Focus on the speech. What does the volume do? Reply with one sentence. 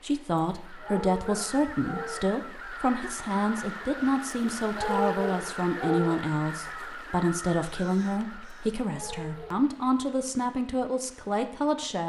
The volume of the speech stays about the same.